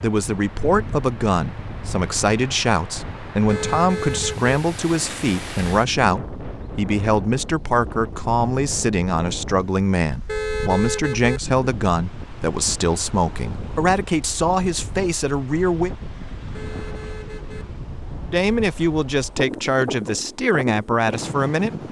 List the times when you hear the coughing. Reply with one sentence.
The coughing can't be heard in this clip.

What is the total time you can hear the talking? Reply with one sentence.
You can hear the talking for 19 seconds altogether.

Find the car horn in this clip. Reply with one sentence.
The car horn can be heard from 3.5 to 4.5 s, from 10.2 to 11.4 s and from 16.5 to 17.6 s.